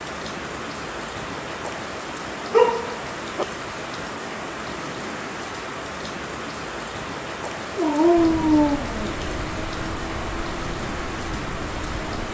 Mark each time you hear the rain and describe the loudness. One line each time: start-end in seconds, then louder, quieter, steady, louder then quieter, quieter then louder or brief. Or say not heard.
0.0-12.2 steady.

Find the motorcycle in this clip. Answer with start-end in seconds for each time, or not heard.
8.2-12.2.